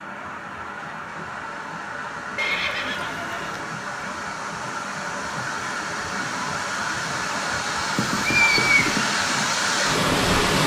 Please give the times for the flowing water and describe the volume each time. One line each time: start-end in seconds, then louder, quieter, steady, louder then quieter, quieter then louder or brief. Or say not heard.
0.0-10.6 louder.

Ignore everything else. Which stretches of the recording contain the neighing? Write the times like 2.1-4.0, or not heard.
2.4-3.6, 8.0-9.1.